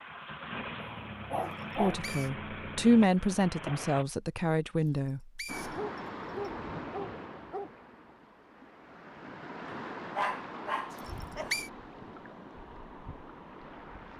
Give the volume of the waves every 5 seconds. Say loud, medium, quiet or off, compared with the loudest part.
off, loud, loud.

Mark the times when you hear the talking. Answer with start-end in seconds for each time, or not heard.
1.8-5.2.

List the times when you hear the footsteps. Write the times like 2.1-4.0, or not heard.
not heard.